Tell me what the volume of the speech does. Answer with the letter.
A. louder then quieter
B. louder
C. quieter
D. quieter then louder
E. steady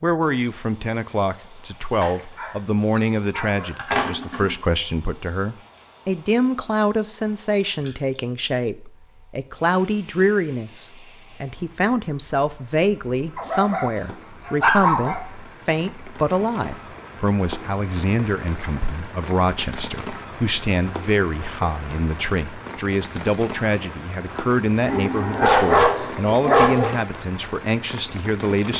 E.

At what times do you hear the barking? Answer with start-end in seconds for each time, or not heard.
2.0-4.5, 13.3-15.2, 24.8-26.9.